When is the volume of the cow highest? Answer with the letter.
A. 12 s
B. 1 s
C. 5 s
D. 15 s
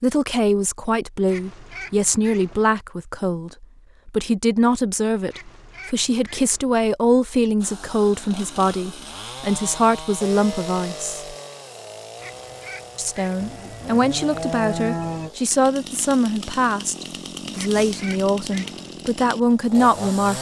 D.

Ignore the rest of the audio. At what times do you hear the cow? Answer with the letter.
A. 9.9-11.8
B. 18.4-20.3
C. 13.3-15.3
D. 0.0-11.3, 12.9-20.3
C.